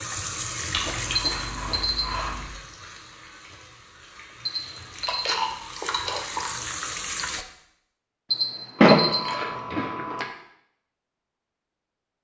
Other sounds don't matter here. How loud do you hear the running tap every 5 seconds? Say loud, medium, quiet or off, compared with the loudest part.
loud, loud, off.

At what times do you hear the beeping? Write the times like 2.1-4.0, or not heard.
1.1-2.1, 4.5-5.4, 8.3-9.2.